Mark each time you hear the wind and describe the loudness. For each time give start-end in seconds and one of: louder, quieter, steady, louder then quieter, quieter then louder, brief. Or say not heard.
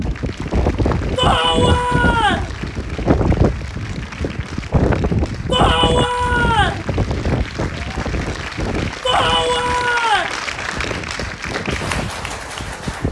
0.0-13.0 quieter.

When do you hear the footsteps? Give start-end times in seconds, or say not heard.
not heard.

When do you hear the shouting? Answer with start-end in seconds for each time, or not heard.
1.1-2.5, 5.5-6.8, 9.0-10.3.